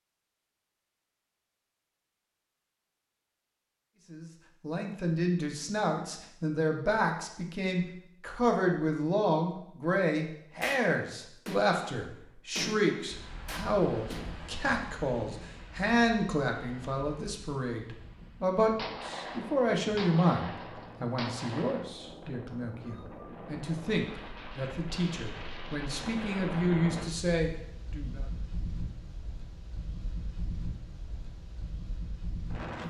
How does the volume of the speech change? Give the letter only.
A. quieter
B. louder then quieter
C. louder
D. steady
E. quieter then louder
D.